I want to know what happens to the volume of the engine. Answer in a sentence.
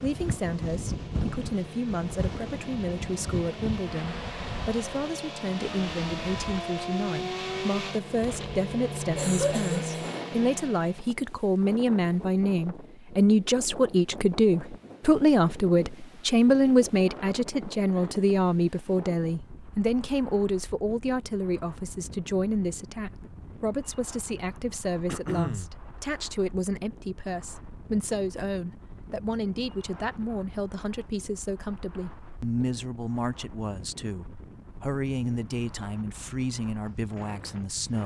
The volume of the engine goes up.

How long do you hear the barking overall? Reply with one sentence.
You can't hear the barking here.